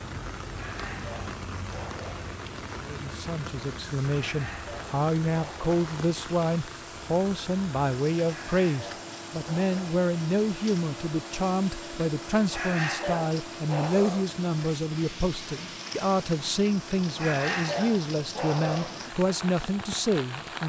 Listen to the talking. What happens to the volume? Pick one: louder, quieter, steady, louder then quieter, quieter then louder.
steady.